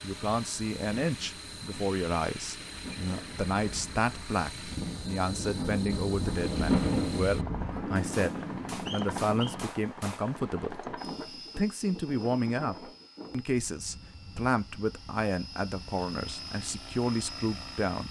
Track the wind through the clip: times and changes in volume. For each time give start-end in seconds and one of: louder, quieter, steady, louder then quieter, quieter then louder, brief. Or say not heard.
0.0-17.9 louder then quieter.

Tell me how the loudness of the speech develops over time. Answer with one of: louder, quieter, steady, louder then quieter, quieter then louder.
steady.